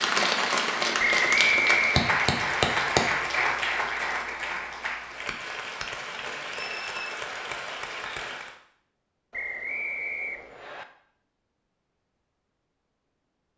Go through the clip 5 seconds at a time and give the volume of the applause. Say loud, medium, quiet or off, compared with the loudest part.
loud, medium, off.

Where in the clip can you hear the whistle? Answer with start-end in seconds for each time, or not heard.
0.9-2.0, 6.6-7.2, 9.3-10.8.